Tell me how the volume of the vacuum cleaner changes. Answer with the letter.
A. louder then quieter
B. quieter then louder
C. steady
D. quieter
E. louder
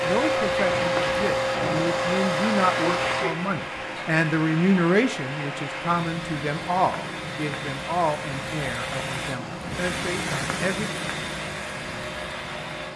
D.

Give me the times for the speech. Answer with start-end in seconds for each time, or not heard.
0.0-10.9.